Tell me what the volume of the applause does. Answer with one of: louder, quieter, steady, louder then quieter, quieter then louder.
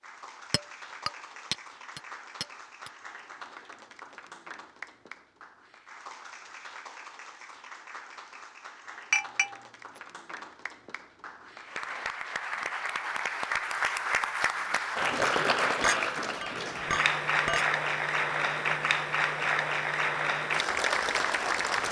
louder.